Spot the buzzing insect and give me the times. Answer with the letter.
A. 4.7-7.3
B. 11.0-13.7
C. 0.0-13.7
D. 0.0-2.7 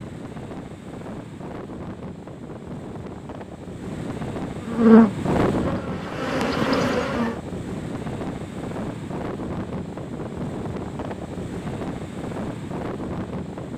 A.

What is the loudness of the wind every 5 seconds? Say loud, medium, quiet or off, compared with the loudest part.
medium, loud, loud.